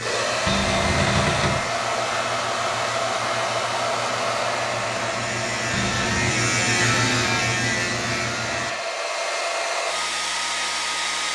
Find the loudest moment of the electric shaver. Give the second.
7 s.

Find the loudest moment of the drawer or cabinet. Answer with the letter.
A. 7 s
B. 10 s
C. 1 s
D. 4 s
C.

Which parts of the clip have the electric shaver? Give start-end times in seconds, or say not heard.
0.0-8.8.